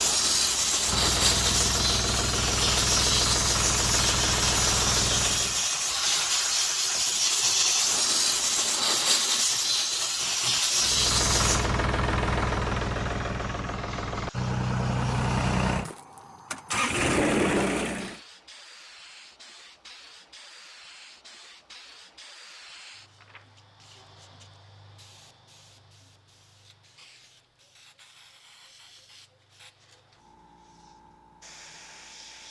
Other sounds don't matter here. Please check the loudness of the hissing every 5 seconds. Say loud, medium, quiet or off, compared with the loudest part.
loud, loud, medium, quiet, quiet, quiet, quiet.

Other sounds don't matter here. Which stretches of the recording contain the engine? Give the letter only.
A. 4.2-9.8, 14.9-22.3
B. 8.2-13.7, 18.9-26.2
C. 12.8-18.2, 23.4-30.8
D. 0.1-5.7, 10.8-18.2
D.